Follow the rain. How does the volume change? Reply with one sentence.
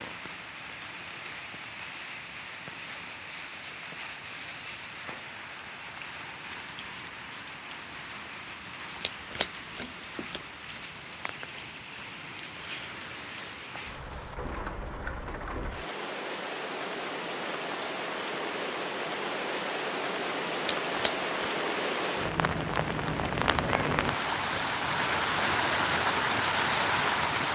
The volume of the rain goes up.